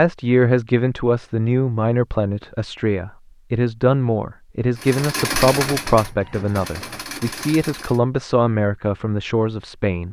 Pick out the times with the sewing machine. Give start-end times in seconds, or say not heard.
4.8-8.0.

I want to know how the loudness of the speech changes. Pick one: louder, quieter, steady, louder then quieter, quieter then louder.
steady.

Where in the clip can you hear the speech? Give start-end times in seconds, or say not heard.
0.0-10.0.